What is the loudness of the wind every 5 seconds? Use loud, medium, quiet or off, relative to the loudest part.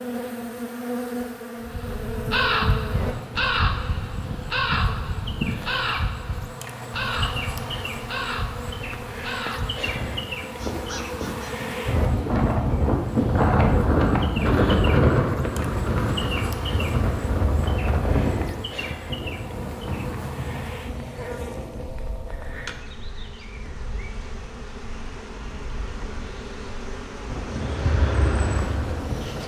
off, off, loud, loud, quiet, quiet.